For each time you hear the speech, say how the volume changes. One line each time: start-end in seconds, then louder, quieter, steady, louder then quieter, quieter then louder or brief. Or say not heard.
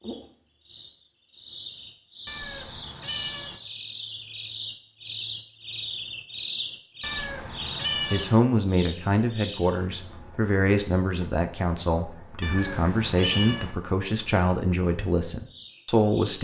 8.1-16.4 steady.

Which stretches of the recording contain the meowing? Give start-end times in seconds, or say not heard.
2.2-3.6, 7.0-8.3, 12.4-13.8.